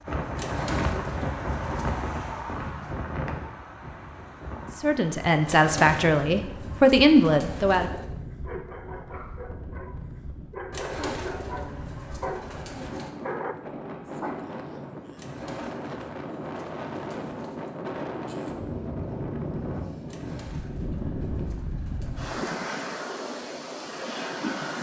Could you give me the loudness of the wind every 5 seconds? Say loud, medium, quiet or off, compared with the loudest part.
loud, medium, medium, loud, loud.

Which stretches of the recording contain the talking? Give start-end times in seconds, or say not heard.
4.8-7.9.